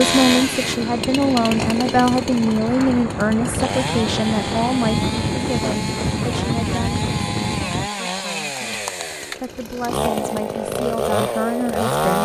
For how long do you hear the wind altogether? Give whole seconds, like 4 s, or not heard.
8 s.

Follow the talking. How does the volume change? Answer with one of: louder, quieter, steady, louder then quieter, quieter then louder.
quieter then louder.